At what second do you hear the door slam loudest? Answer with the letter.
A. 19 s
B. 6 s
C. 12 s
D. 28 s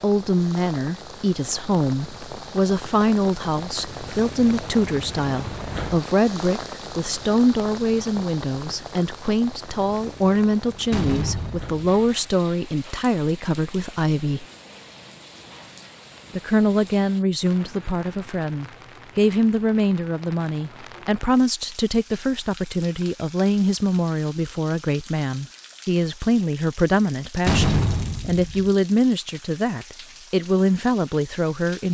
D.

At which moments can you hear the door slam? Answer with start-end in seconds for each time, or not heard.
10.9-12.2, 27.4-28.7.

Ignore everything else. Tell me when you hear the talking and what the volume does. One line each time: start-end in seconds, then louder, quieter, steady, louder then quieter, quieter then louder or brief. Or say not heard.
0.0-14.4 steady
16.4-31.9 steady.